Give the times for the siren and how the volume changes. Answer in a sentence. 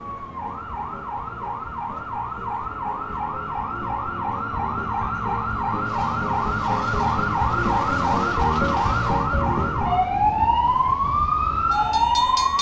The siren can be heard from 0.0 to 12.5 s, getting louder.